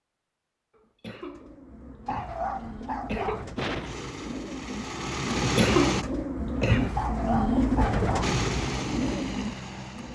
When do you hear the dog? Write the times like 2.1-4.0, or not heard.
2.0-3.5, 7.0-8.3.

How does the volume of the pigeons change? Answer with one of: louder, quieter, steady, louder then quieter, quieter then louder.
louder then quieter.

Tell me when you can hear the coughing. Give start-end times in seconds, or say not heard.
1.0-3.5, 5.3-7.0.